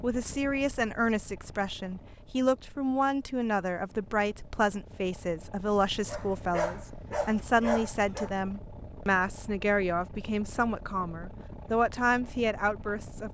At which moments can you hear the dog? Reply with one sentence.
You can hear the dog from 6.0 to 8.3 s.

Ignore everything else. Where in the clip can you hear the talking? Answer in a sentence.
You can hear the talking from 0.0 to 13.2 s.